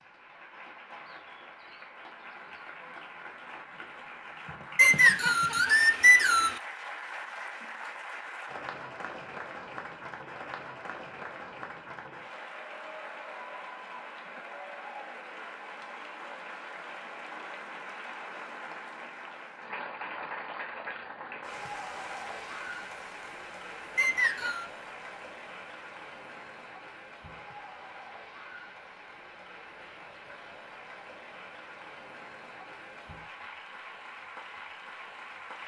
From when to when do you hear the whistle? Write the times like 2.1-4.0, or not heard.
4.8-6.6, 23.9-24.6.